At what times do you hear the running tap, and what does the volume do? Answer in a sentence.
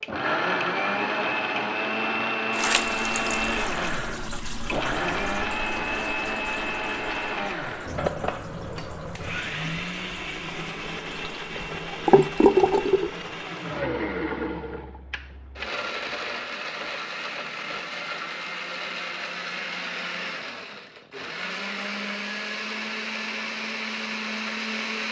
The running tap can be heard from 2.5 to 13.2 s, getting quieter then louder.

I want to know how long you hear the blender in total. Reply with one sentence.
The blender can be heard for 25 seconds in total.